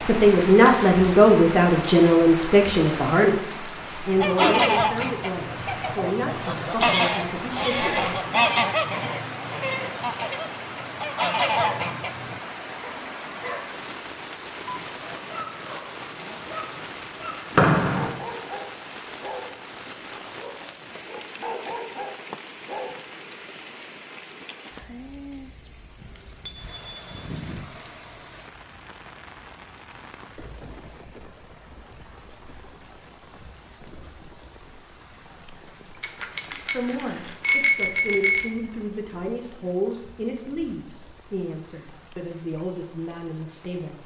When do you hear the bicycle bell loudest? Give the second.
38 s.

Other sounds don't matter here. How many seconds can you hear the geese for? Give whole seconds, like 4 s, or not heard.
8 s.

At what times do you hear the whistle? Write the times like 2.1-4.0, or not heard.
17.6-18.1.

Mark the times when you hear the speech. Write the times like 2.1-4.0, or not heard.
0.1-8.1, 36.5-44.0.